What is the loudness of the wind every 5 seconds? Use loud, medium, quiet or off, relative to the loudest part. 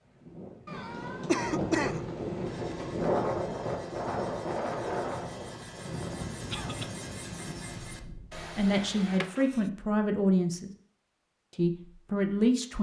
loud, medium, off.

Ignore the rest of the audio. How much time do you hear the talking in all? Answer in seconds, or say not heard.
3 s.